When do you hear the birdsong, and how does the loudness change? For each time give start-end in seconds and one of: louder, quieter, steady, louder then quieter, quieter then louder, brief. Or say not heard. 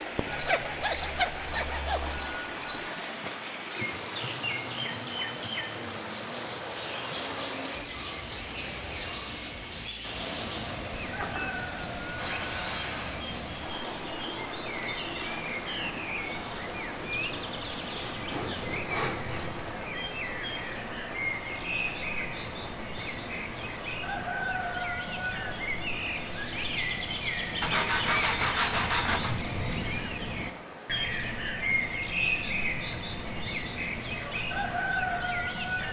0.0-35.8 louder.